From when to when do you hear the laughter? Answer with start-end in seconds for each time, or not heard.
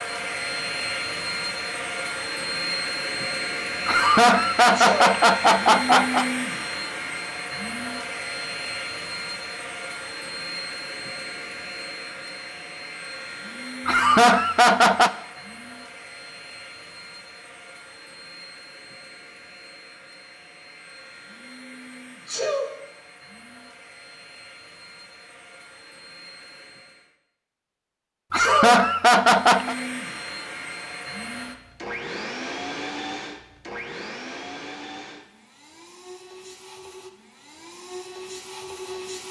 3.9-6.2, 13.8-15.1, 28.3-29.8.